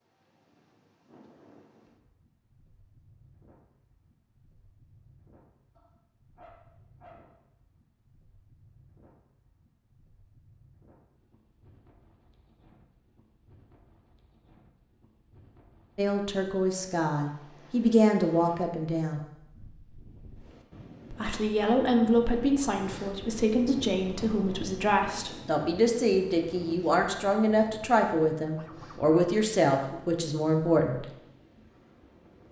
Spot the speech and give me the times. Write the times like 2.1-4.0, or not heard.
15.9-19.2, 21.1-31.1.